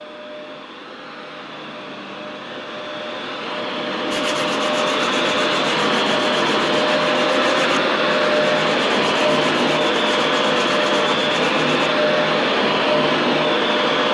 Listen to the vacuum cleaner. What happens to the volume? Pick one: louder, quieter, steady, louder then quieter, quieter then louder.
louder.